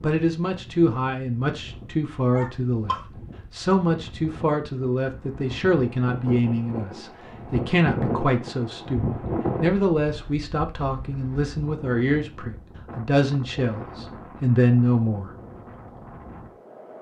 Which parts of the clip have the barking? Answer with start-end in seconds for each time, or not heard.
2.3-3.0.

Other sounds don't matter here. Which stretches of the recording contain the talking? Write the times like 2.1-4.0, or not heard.
0.0-15.3.